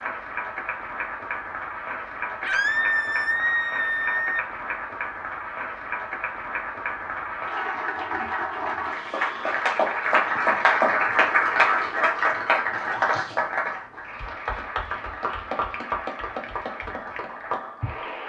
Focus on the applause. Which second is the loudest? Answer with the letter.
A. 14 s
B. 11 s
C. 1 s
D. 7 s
B.